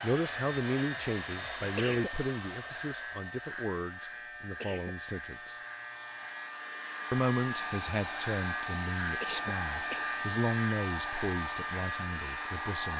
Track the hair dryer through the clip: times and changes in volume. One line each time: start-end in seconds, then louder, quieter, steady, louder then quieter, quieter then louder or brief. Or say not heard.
0.0-12.9 quieter then louder.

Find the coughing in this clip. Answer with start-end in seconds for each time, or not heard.
1.6-2.1, 4.5-5.0, 9.1-10.1.